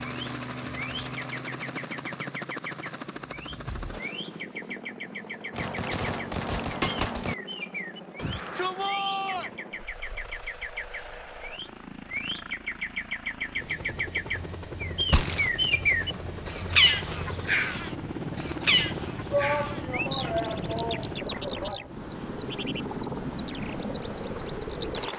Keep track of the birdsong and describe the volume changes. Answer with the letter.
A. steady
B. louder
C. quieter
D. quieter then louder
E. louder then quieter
E.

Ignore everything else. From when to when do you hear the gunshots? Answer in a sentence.
The gunshots can be heard from 5.5 to 7.3 s and from 15.1 to 15.5 s.